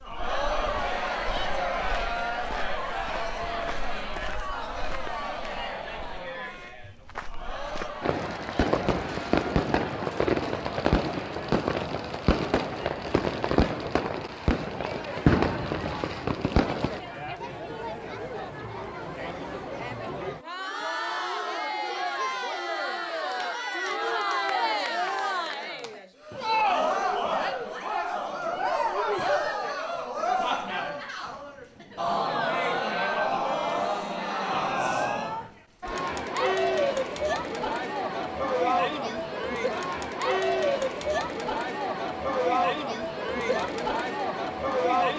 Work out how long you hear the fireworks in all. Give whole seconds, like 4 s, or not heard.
9 s.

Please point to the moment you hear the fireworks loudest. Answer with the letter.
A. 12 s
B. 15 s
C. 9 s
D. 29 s
B.